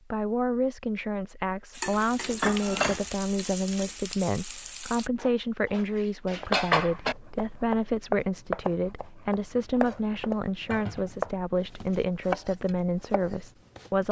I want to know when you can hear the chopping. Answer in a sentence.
You can hear the chopping from 6.4 to 14.0 s.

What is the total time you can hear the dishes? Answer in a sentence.
You can hear the dishes for 5 seconds altogether.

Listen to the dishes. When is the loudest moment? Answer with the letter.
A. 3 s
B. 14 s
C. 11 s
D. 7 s
D.